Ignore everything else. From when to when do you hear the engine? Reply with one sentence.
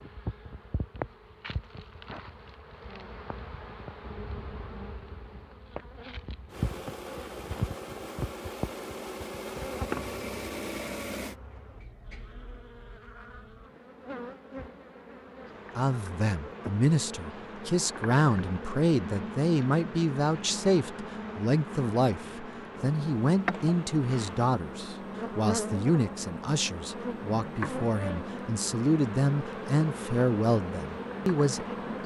You can hear the engine from 6.5 to 11.3 s and from 22.8 to 32.0 s.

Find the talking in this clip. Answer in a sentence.
You can hear the talking from 15.8 to 32.0 s.